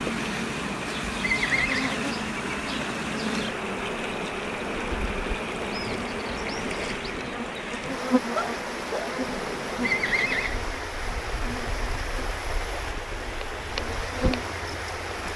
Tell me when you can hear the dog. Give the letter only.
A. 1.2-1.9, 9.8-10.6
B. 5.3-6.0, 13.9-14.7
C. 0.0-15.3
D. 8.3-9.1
D.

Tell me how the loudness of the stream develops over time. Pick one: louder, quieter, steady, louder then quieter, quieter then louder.
steady.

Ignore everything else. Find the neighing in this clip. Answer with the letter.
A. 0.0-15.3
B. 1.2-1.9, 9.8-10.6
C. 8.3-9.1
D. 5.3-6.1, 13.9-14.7
B.